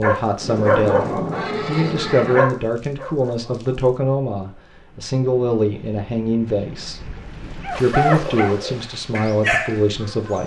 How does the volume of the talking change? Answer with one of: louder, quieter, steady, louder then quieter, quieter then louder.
steady.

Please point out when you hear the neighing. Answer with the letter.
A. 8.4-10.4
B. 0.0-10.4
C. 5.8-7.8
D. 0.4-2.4
D.